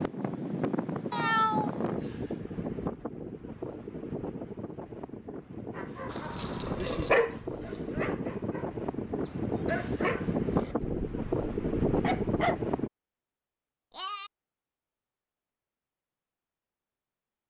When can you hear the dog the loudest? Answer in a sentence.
The volume of the dog peaks at 7 seconds.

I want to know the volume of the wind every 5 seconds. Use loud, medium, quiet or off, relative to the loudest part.
medium, medium, loud, off.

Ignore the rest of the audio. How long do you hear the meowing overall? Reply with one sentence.
The meowing can be heard for 2 seconds in total.